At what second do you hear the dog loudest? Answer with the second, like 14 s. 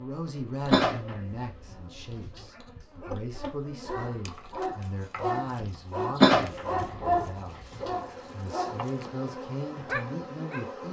7 s.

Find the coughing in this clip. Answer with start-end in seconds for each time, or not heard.
0.7-2.5, 6.2-7.9.